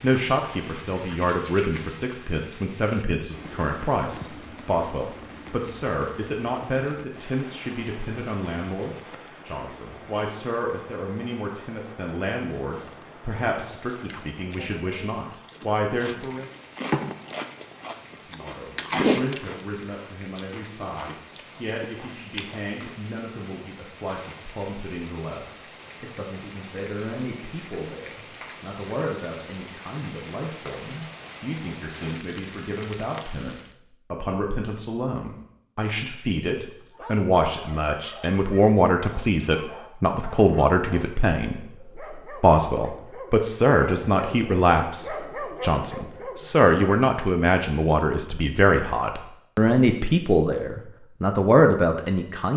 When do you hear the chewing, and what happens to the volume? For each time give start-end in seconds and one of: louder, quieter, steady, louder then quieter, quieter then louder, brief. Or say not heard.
12.6-22.7 louder then quieter.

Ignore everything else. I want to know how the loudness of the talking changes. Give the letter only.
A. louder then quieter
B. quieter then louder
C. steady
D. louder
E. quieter
B.